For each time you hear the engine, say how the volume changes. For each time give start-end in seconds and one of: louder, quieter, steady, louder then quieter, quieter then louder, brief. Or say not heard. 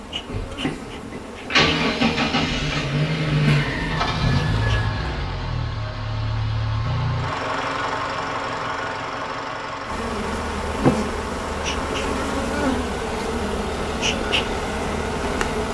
0.0-15.7 quieter.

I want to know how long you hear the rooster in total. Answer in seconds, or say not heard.
2 s.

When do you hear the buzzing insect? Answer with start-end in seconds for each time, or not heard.
0.0-4.9, 9.8-15.7.